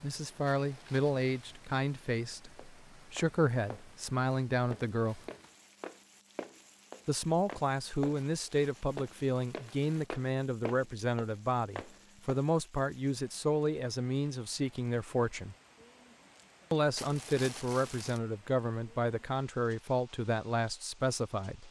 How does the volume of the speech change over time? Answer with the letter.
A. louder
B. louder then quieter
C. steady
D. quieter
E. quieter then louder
C.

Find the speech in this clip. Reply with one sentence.
The speech can be heard from 0.0 to 5.2 s, from 7.0 to 15.6 s and from 16.7 to 21.6 s.